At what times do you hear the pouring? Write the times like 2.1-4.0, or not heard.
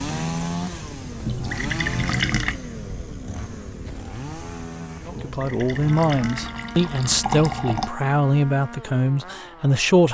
1.2-2.6, 5.2-8.0.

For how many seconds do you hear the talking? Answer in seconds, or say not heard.
5 s.